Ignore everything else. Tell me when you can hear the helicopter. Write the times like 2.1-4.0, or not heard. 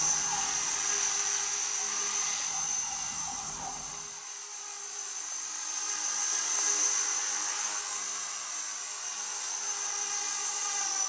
0.0-11.0.